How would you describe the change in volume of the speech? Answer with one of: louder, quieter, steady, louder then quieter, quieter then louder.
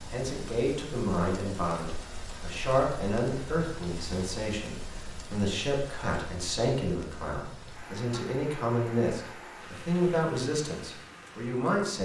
steady.